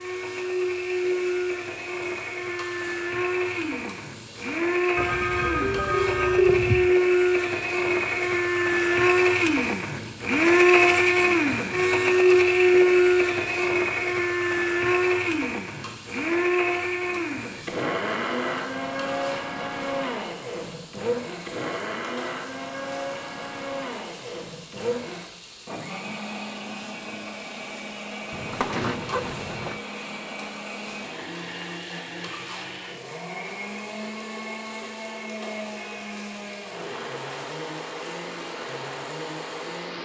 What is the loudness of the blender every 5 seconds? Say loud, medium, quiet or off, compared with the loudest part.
medium, loud, loud, medium, quiet, quiet, quiet, quiet.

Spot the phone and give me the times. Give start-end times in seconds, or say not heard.
5.0-6.9, 28.3-29.8.